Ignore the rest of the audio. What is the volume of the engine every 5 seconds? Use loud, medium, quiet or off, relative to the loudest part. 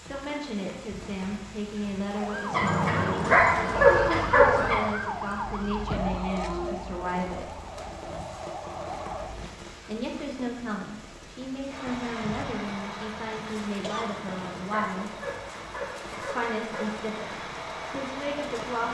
off, off, loud, loud.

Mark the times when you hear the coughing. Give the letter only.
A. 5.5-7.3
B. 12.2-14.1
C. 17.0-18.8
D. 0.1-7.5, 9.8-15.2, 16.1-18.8
B.